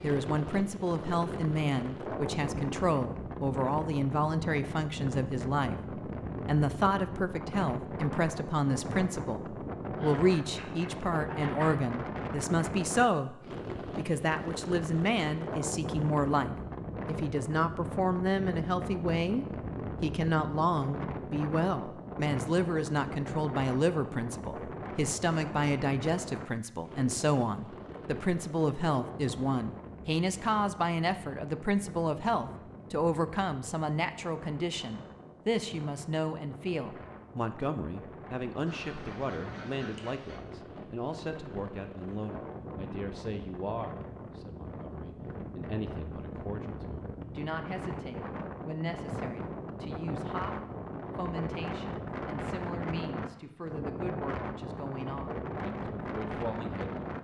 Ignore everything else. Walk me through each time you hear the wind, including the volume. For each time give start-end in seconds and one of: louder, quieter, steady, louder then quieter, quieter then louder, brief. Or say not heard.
0.0-57.1 quieter then louder.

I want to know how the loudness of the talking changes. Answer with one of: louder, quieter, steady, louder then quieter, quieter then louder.
quieter.